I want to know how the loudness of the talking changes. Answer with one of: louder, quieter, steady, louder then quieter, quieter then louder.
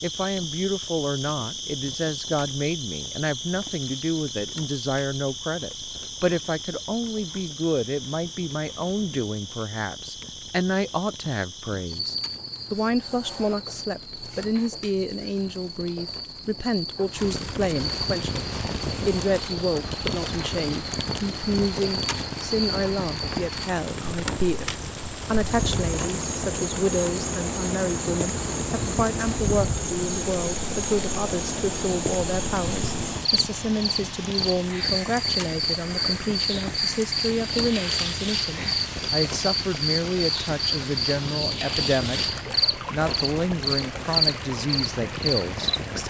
steady.